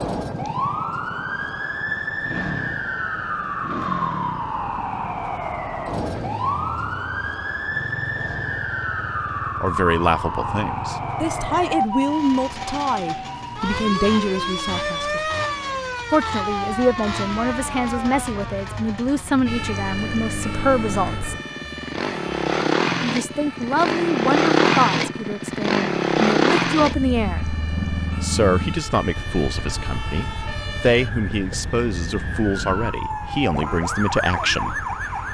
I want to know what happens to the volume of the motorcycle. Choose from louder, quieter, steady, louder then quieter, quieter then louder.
louder then quieter.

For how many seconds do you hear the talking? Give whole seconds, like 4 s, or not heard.
22 s.